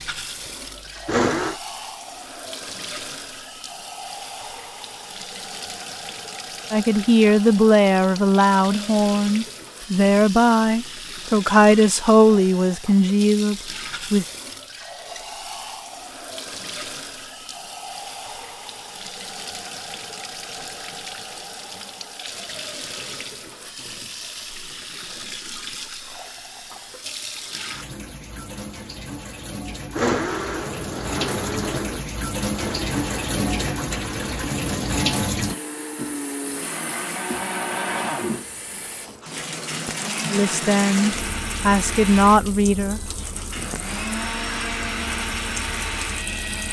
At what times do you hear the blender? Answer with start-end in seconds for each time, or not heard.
0.0-1.6, 29.8-46.6.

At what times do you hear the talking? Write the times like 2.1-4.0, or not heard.
6.7-14.2, 40.3-43.0.